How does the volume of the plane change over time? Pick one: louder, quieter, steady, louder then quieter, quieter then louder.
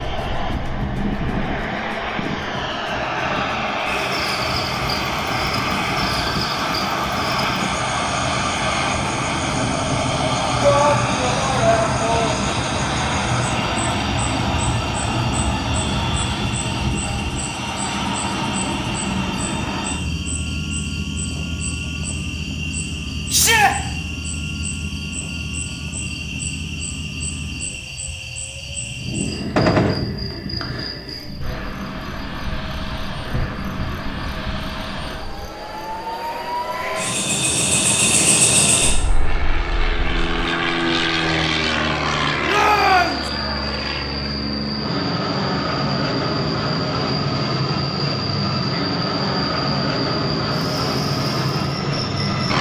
quieter then louder.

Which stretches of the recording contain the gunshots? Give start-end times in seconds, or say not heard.
29.6-30.1.